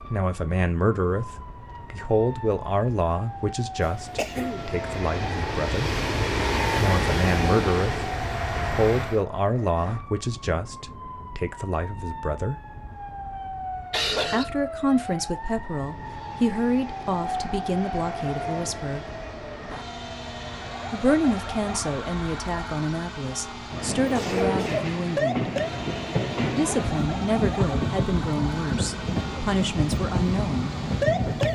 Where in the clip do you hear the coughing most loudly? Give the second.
14 s.